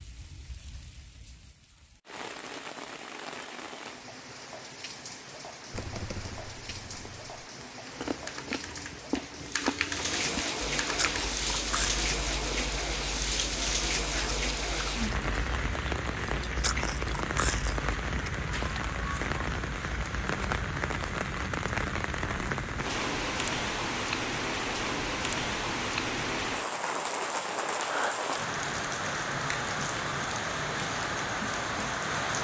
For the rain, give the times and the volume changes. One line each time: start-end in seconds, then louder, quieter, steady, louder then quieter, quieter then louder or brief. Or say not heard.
0.0-32.3 louder.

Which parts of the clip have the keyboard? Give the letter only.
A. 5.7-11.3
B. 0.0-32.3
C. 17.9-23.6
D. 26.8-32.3
A.